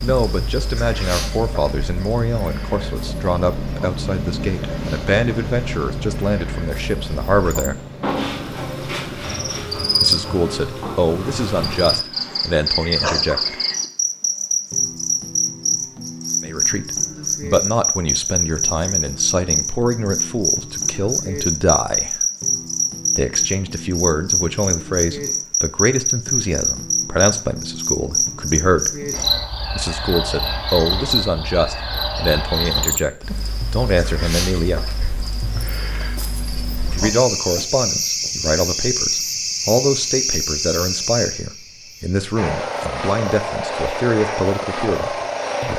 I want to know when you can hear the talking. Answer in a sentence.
The talking can be heard from 0.0 to 7.8 s, from 10.0 to 13.6 s, from 16.4 to 22.2 s, from 23.1 to 29.1 s, from 29.8 to 34.9 s and from 37.0 to 45.7 s.